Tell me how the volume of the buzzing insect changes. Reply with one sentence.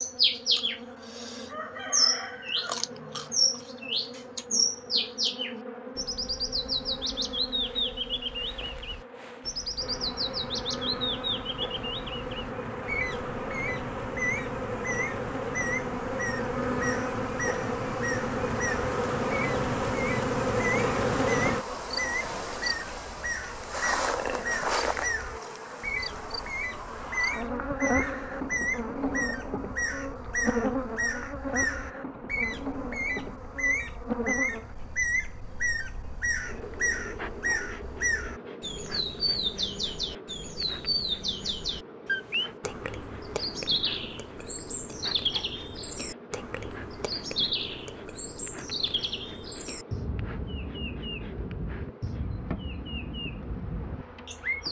The volume of the buzzing insect goes up, then down.